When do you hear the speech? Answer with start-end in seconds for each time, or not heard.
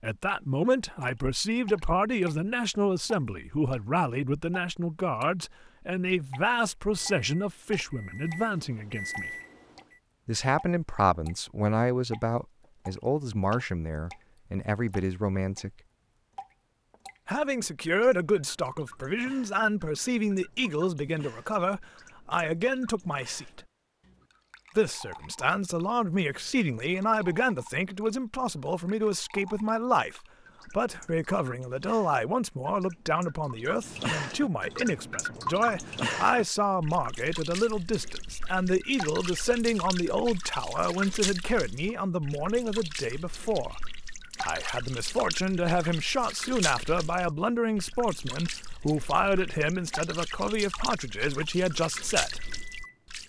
0.0-9.3, 10.2-15.7, 17.2-23.6, 24.8-43.8, 44.4-52.4.